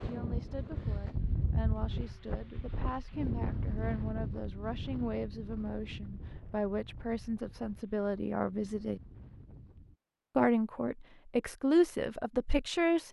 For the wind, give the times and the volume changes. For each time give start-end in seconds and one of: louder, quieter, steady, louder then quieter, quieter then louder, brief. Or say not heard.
0.0-9.9 quieter.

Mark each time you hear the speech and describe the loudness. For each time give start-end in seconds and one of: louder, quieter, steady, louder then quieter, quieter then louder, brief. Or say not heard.
0.1-9.0 louder
10.3-13.0 brief.